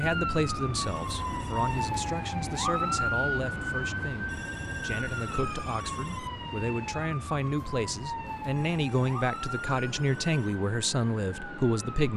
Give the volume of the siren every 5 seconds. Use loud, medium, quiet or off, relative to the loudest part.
loud, medium, medium.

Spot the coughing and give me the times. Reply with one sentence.
You can't hear the coughing here.